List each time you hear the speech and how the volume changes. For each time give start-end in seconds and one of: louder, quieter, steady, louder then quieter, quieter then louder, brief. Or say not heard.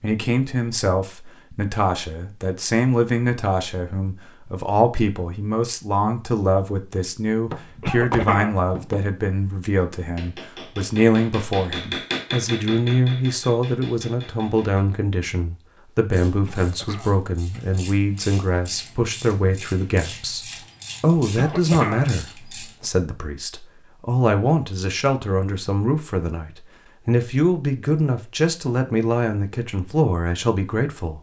0.0-31.1 steady.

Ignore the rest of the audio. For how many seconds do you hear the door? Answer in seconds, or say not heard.
2 s.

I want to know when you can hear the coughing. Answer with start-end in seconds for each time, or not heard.
7.8-8.6, 16.4-17.2, 21.4-22.1.